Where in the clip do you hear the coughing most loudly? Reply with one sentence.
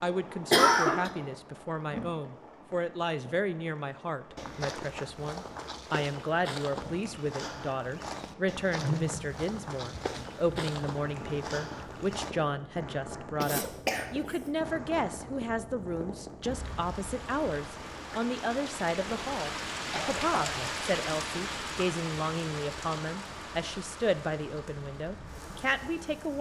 The volume of the coughing peaks at 1 second.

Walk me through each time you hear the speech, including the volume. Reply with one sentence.
You can hear the speech from 0.0 to 26.3 s, at a steady volume.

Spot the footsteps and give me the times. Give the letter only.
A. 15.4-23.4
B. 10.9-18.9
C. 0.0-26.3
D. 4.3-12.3
D.